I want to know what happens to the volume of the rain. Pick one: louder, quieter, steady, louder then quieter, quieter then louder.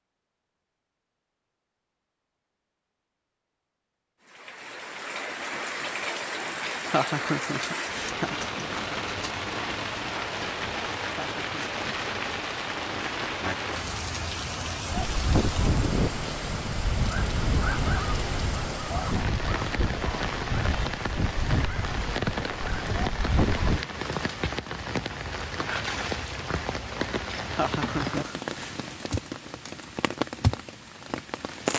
steady.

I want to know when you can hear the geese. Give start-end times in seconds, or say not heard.
14.8-23.9.